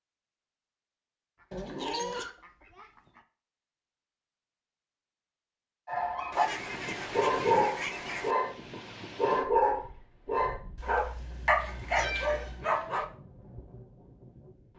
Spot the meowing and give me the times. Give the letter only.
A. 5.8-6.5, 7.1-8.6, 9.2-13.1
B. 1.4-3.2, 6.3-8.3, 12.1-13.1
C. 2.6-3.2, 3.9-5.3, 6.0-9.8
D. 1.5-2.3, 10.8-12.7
D.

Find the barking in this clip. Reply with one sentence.
You can hear the barking from 5.8 to 6.5 s, from 7.1 to 8.6 s and from 9.2 to 13.1 s.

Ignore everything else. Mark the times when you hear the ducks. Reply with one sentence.
You can hear the ducks from 1.4 to 3.2 s, from 6.3 to 8.3 s and from 12.1 to 13.1 s.